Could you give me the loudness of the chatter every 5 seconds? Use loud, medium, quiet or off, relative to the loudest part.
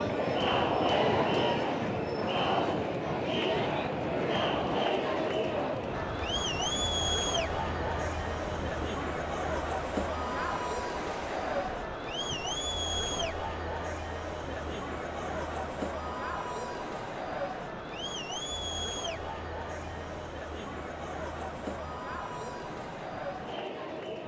loud, loud, medium, medium, medium.